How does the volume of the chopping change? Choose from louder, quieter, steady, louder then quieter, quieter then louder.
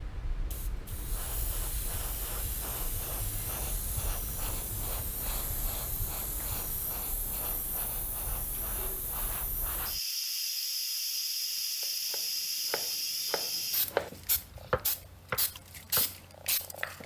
louder then quieter.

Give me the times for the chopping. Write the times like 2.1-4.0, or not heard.
11.8-17.0.